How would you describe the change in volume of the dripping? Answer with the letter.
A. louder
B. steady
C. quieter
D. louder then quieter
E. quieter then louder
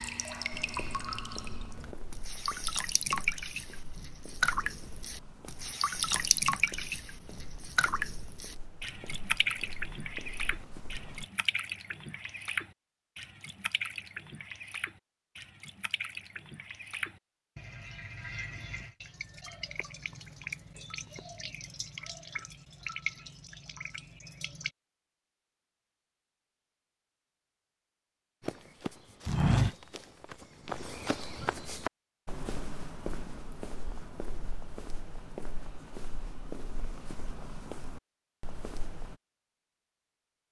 C.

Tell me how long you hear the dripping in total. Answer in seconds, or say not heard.
25 s.